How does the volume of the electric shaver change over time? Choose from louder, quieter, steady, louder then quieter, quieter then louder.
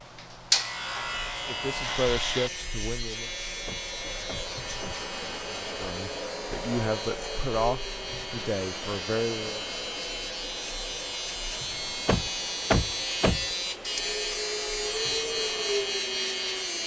quieter then louder.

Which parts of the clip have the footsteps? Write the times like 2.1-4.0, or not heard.
not heard.